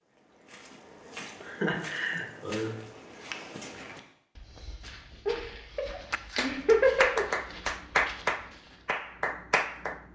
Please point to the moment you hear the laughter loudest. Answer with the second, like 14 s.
7 s.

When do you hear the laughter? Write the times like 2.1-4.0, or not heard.
1.4-2.8, 5.2-7.2.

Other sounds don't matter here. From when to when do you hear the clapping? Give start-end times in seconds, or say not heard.
6.1-10.1.